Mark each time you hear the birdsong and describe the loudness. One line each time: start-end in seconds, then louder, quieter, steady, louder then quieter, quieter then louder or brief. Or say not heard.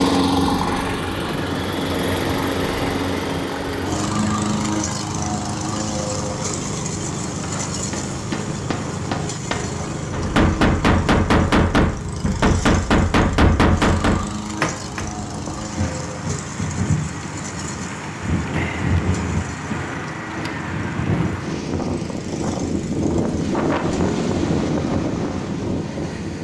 not heard.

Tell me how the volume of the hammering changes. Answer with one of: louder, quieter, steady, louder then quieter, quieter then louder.
louder.